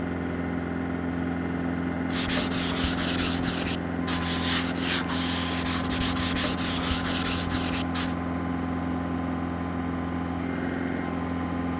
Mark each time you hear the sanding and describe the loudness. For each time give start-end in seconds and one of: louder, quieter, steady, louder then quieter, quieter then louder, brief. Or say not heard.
2.1-8.2 steady.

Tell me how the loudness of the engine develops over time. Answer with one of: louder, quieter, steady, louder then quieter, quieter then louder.
steady.